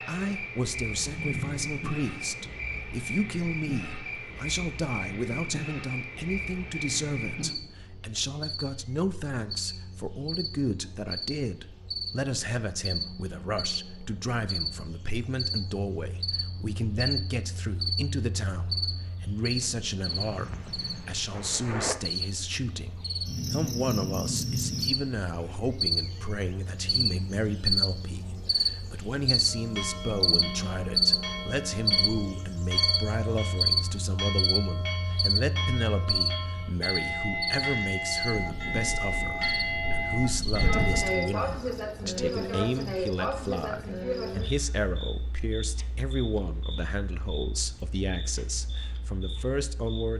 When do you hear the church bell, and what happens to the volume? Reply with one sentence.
You can hear the church bell from 29.4 to 41.3 s, getting louder.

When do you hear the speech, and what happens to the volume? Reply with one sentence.
The speech can be heard from 0.0 to 50.1 s, at a steady volume.